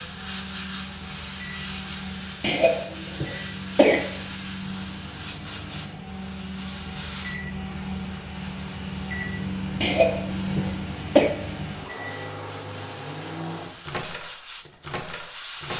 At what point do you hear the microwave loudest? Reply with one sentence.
The loudest moment of the microwave is at 10 seconds.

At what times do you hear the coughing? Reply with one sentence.
You can hear the coughing from 2.4 to 4.0 s and from 9.8 to 11.3 s.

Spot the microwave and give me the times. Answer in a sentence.
You can hear the microwave from 0.0 to 15.7 s.